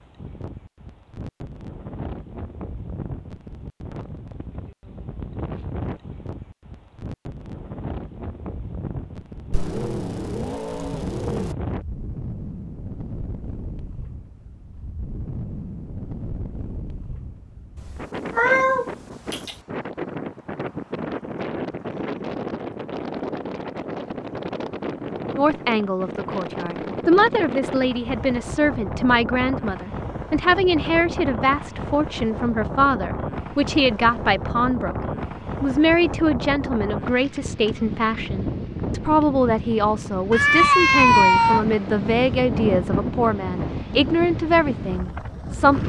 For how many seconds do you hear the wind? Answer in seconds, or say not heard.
46 s.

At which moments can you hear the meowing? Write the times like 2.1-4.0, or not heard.
9.5-11.6, 17.8-19.6, 40.3-41.6.